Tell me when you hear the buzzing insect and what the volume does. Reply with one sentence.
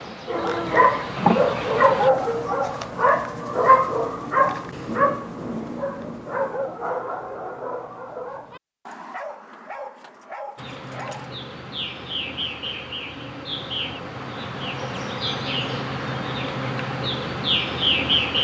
The buzzing insect can be heard briefly from 0.0 to 2.1 s; and from 10.6 to 18.4 s, getting louder.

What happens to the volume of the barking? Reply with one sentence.
The loudness of the barking goes down.